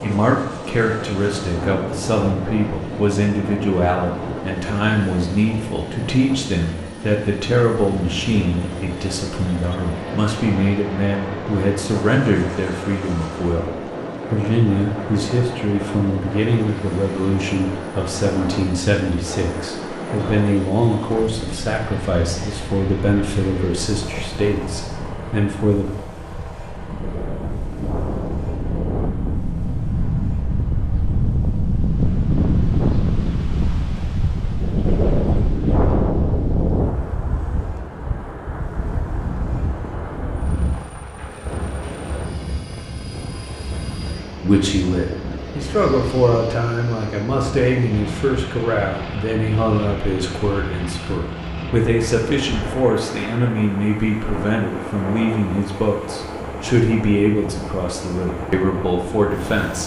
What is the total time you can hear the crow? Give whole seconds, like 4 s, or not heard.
not heard.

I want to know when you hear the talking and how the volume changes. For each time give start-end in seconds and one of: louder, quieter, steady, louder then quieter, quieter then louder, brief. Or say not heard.
0.0-13.7 steady
14.3-25.9 steady
44.4-59.8 steady.